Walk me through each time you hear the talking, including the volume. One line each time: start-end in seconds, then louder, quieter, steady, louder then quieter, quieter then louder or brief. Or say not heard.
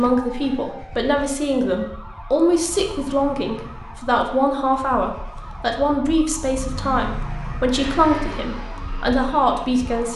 0.0-10.1 steady.